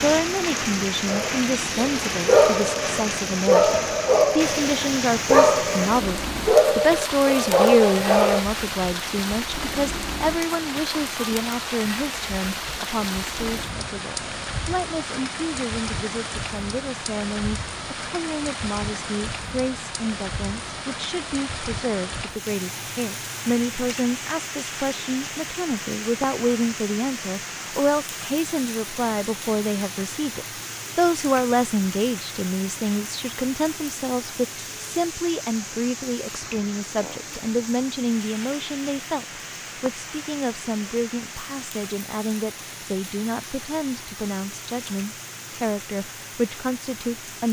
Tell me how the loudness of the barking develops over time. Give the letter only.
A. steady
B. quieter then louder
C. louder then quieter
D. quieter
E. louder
A.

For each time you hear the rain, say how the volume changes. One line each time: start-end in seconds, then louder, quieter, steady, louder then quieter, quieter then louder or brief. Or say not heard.
0.0-47.4 quieter.